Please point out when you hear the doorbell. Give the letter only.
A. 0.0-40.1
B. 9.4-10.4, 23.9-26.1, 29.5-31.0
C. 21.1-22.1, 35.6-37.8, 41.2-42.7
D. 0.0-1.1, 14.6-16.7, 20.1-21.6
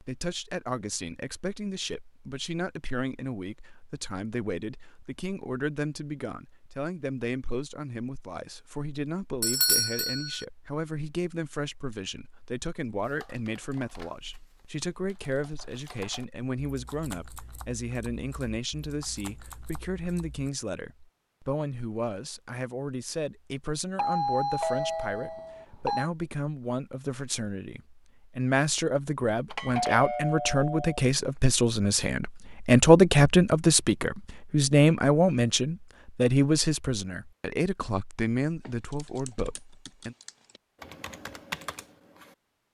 B.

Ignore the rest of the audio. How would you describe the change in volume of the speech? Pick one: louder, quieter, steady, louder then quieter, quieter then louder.
louder.